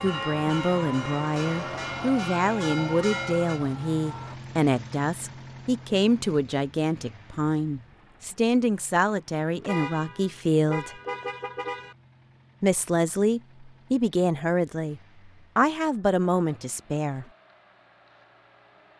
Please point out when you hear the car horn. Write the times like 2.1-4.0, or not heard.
9.6-11.9.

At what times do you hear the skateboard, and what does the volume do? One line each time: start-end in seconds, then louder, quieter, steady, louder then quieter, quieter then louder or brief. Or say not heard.
not heard.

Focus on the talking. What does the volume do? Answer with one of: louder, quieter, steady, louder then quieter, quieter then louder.
steady.